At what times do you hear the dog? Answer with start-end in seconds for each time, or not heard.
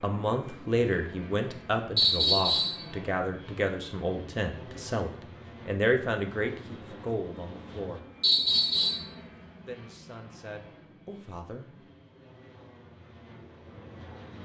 not heard.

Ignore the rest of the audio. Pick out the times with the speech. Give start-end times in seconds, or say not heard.
0.0-8.1, 9.6-11.8.